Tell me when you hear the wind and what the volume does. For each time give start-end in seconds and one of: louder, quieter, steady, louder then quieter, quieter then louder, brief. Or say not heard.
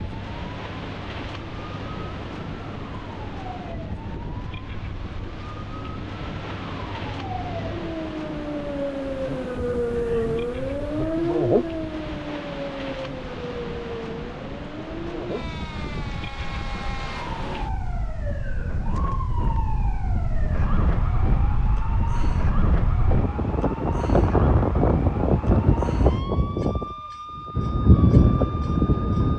0.0-29.3 louder.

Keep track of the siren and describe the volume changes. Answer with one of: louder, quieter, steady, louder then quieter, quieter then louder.
louder then quieter.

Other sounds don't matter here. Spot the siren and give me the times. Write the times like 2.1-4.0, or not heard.
0.0-29.3.